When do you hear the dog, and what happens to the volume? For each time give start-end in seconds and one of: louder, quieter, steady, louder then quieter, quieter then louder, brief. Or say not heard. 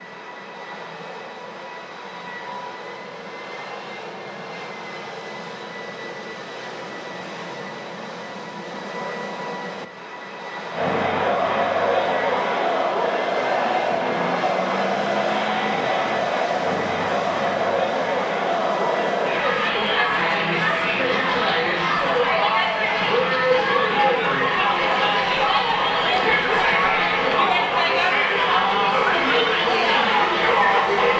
not heard.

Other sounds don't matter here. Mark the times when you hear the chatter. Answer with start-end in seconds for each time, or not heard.
10.7-31.1.